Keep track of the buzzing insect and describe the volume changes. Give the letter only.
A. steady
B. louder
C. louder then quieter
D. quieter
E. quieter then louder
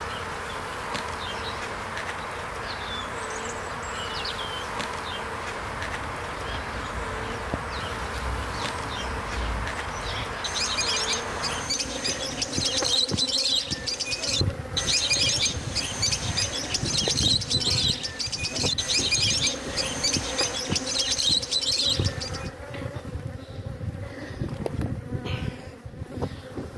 A.